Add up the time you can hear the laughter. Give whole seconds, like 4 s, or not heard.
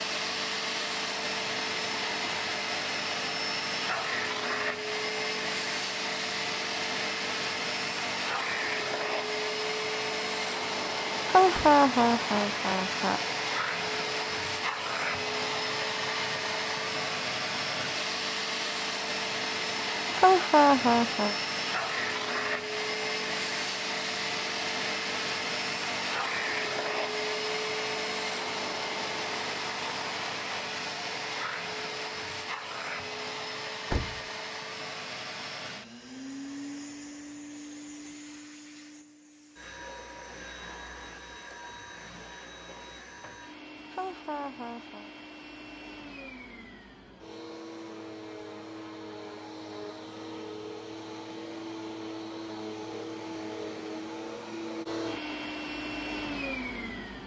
4 s.